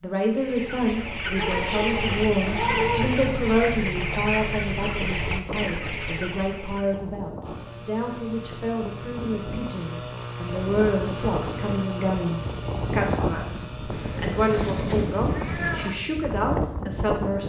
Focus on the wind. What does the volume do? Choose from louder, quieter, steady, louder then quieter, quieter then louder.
louder.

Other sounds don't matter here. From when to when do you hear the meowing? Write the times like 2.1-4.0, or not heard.
1.4-3.1, 13.9-15.9.